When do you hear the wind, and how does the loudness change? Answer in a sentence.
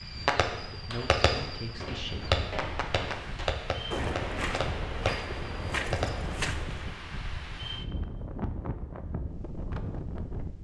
You can hear the wind from 0.0 to 10.5 s, getting louder.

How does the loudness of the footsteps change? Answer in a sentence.
The loudness of the footsteps goes up.